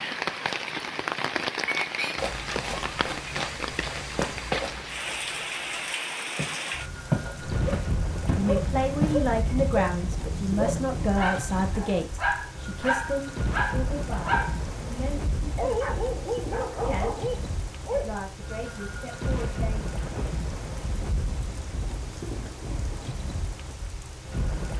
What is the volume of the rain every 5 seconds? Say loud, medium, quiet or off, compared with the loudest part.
loud, loud, medium, medium, medium.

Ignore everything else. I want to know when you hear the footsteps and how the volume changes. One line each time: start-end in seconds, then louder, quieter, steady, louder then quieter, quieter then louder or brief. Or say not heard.
2.1-9.7 quieter then louder.